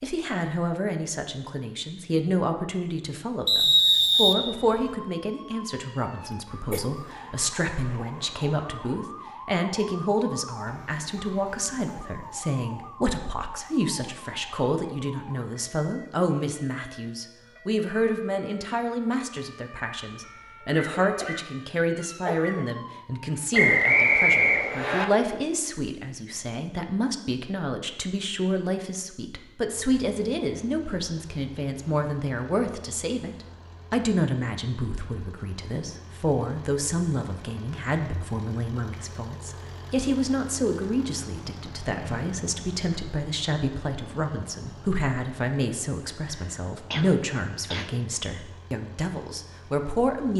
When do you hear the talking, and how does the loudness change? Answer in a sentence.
The talking can be heard from 0.0 to 50.3 s, at a steady volume.